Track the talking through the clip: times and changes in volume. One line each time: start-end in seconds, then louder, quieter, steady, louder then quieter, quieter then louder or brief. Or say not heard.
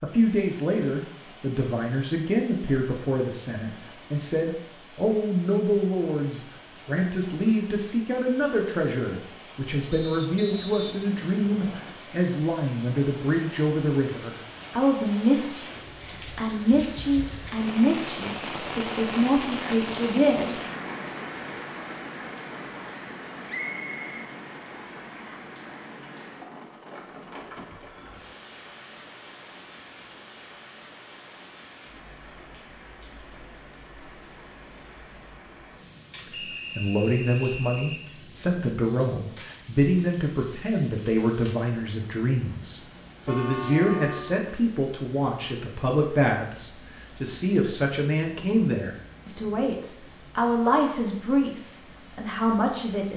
0.0-20.6 steady
36.8-53.1 steady.